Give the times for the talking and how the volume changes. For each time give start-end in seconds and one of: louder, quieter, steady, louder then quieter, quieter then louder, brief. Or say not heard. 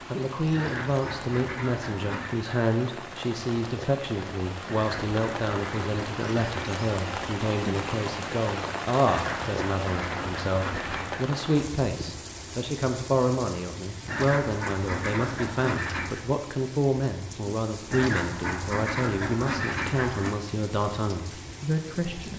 0.1-22.3 steady.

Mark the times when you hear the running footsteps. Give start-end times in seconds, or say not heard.
not heard.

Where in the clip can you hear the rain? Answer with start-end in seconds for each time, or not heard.
0.0-22.3.